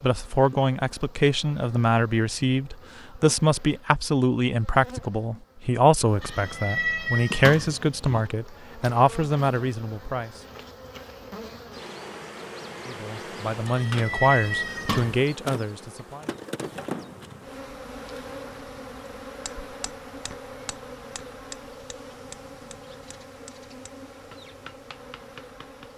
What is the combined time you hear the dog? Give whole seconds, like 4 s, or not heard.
not heard.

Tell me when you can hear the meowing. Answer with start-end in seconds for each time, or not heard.
6.2-8.2, 13.7-15.2.